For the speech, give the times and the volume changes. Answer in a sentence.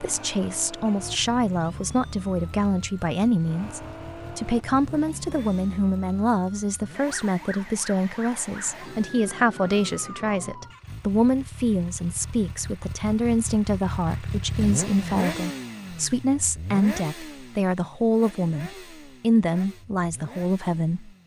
You can hear the speech from 0.0 to 21.1 s, at a steady volume.